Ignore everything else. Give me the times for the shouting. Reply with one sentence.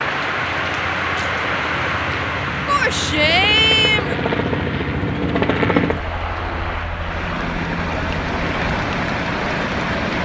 The shouting can be heard from 2.6 to 4.2 s.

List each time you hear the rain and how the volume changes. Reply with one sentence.
You can hear the rain from 0.0 to 10.2 s, getting quieter then louder.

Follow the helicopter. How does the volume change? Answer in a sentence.
The loudness of the helicopter goes up, then down.